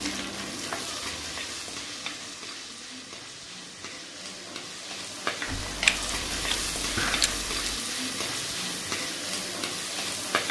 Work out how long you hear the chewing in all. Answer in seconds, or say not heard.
2 s.